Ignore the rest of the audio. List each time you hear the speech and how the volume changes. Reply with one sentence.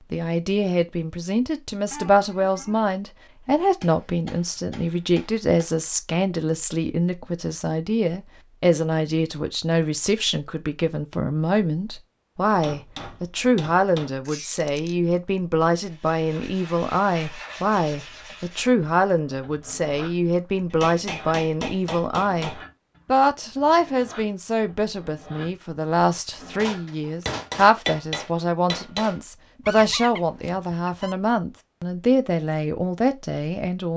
You can hear the speech from 0.1 to 33.9 s, at a steady volume.